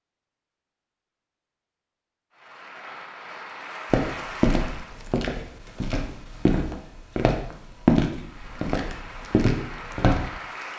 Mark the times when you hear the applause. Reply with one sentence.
You can hear the applause from 2.3 to 5.0 s and from 8.1 to 10.7 s.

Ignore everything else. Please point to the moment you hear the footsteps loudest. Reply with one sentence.
The loudest moment of the footsteps is at 8 seconds.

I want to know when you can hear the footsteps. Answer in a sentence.
You can hear the footsteps from 3.9 to 10.3 s.